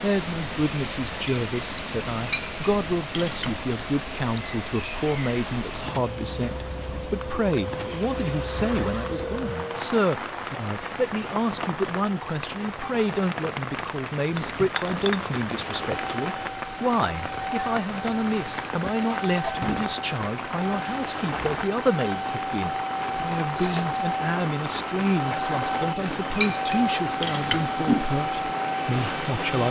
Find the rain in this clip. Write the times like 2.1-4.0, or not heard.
0.0-29.6.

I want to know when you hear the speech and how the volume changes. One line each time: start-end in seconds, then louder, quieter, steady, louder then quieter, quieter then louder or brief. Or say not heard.
0.0-29.6 steady.